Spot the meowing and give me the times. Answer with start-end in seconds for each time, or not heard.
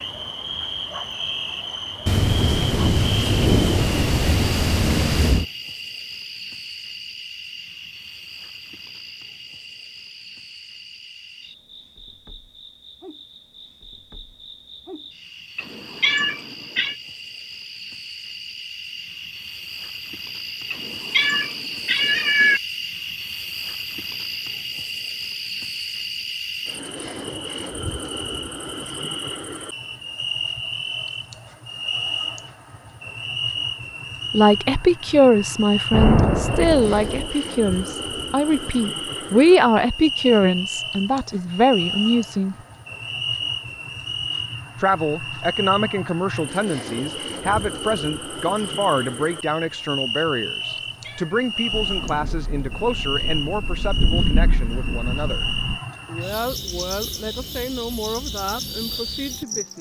15.6-16.9, 20.7-22.6, 50.9-51.5.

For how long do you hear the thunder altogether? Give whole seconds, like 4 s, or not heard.
9 s.